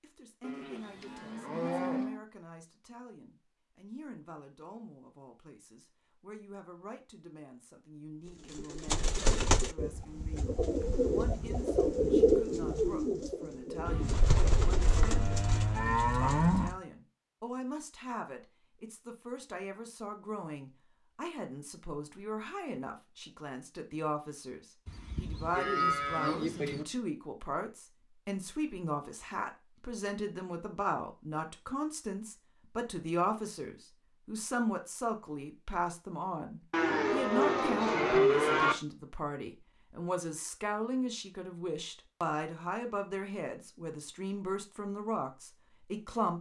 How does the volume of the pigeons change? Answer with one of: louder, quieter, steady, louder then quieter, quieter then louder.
louder then quieter.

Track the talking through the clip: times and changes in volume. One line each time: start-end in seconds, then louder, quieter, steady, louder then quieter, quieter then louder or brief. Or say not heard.
0.0-46.3 louder.